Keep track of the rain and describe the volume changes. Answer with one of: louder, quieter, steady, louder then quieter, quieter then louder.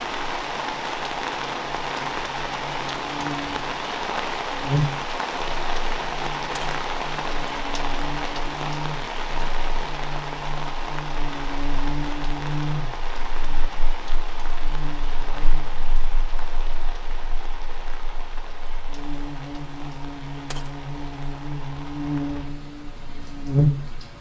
quieter.